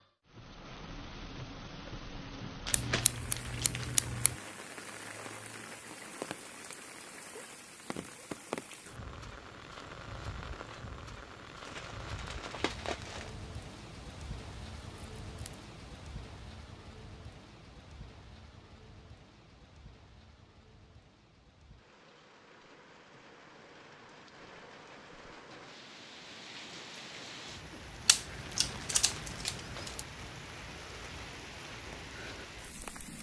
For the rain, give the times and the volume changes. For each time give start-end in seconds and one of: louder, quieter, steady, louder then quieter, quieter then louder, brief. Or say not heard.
0.0-33.1 quieter then louder.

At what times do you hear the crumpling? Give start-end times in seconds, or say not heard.
2.6-4.0, 11.7-13.3, 28.4-29.4.